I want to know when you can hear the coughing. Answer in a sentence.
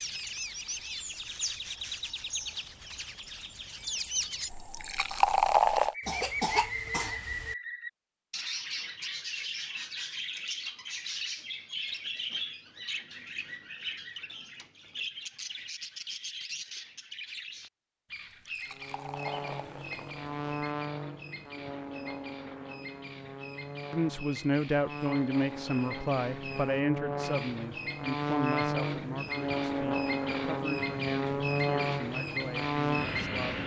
The coughing can be heard from 6.0 to 7.5 s.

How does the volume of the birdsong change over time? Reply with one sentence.
The volume of the birdsong goes down, then up.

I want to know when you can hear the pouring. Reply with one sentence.
You can hear the pouring from 4.5 to 6.0 s and from 18.4 to 20.5 s.